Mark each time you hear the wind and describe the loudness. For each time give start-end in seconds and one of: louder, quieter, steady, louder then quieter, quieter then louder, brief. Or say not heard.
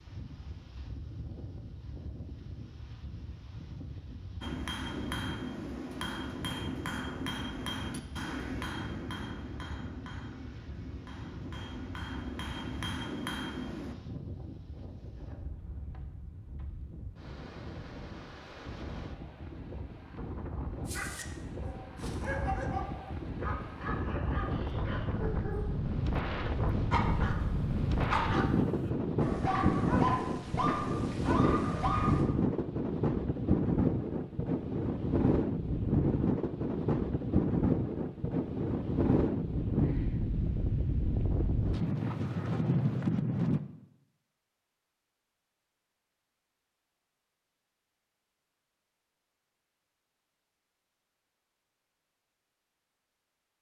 0.0-43.6 louder.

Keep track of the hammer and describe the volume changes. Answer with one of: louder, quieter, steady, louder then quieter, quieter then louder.
quieter then louder.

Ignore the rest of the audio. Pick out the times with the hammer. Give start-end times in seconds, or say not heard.
4.4-13.9.